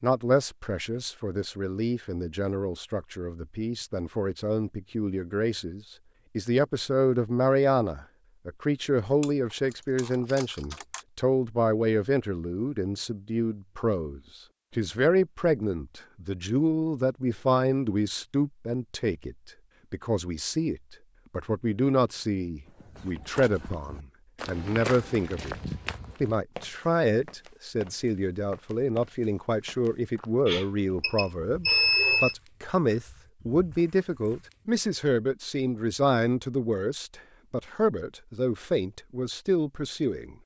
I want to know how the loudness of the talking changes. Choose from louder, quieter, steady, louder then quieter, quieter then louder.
steady.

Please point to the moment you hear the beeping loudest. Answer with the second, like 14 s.
32 s.